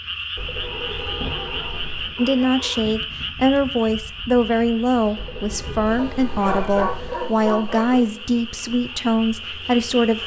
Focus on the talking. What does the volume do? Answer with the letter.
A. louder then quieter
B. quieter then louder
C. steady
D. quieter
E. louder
C.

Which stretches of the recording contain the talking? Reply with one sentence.
You can hear the talking from 2.1 to 10.2 s.